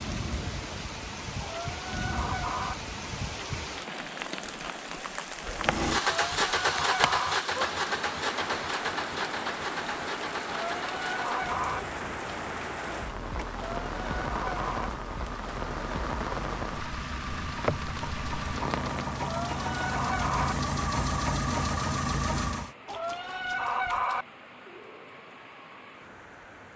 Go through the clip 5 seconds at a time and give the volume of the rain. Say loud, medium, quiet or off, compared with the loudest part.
loud, loud, loud, loud, quiet, quiet.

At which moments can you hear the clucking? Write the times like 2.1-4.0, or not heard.
1.4-2.8, 6.0-7.3, 10.4-11.8, 13.5-14.9, 19.1-20.6, 22.9-24.2.